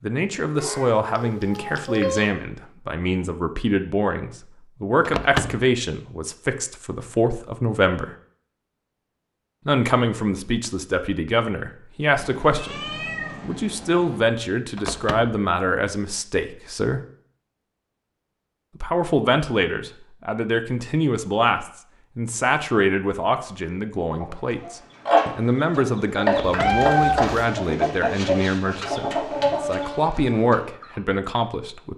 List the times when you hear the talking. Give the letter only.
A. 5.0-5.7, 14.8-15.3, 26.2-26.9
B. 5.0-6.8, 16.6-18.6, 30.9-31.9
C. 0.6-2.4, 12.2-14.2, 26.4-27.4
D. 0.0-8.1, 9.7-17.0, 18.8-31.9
D.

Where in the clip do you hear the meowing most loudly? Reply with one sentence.
The volume of the meowing peaks at 27 seconds.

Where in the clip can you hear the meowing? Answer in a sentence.
The meowing can be heard from 0.6 to 2.4 s, from 12.2 to 14.2 s and from 26.4 to 27.4 s.